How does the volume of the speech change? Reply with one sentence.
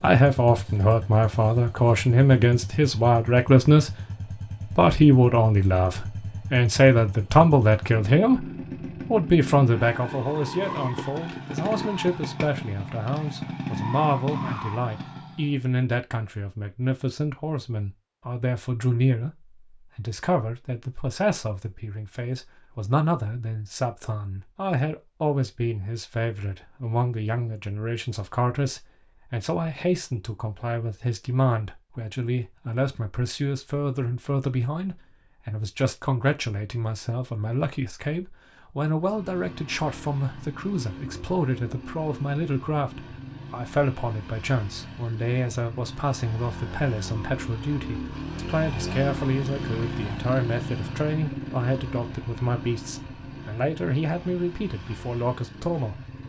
The volume of the speech goes down.